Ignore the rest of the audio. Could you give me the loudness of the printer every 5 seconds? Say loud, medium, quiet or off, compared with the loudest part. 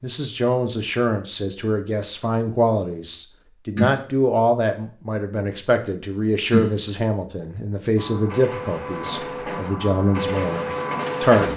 off, medium, loud.